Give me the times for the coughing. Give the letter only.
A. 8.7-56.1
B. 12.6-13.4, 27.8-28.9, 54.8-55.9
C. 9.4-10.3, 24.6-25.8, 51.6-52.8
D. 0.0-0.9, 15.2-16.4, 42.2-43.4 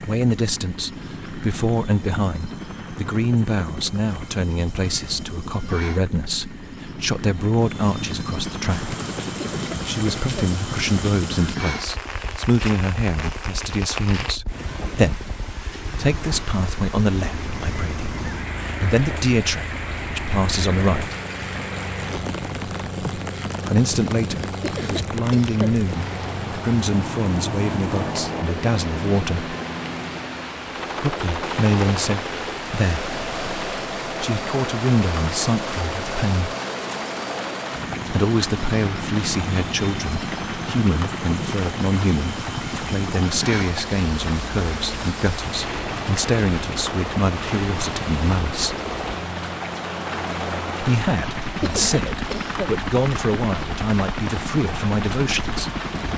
C.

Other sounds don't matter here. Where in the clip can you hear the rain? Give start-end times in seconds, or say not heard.
8.7-56.1.